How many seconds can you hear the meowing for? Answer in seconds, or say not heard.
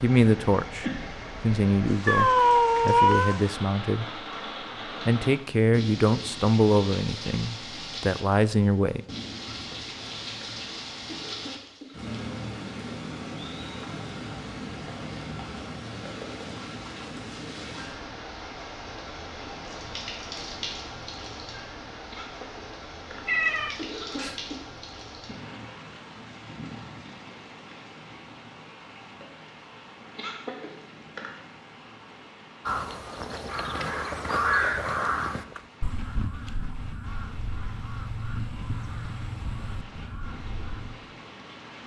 5 s.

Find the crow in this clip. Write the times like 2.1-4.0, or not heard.
32.6-41.0.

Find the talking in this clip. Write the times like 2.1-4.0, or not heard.
0.0-4.2, 4.8-9.0.